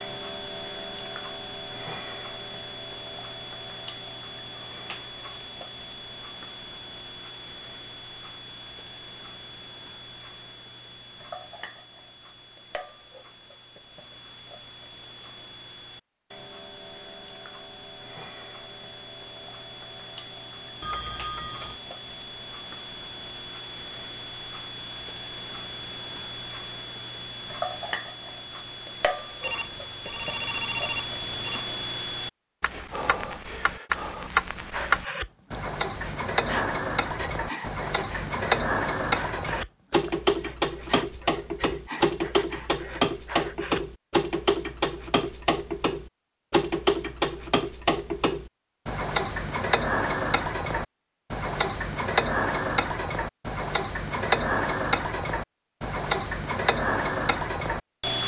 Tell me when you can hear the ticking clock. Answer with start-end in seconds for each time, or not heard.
0.0-58.2.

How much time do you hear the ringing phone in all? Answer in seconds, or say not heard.
3 s.